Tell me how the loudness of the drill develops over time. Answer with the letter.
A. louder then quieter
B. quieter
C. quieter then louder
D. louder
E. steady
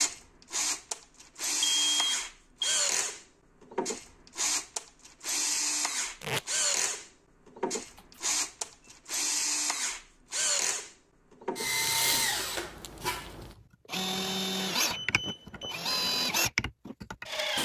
E.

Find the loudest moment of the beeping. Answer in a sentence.
The loudest moment of the beeping is at 2 seconds.